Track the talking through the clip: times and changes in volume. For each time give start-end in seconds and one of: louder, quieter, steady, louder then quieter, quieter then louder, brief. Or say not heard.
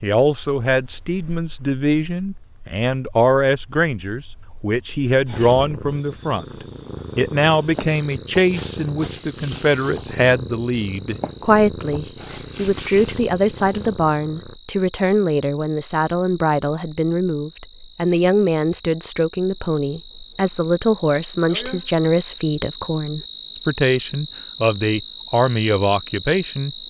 0.0-26.8 steady.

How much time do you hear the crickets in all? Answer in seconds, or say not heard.
27 s.